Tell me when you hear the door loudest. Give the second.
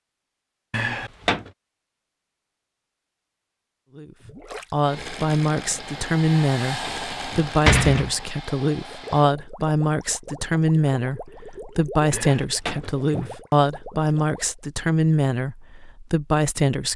8 s.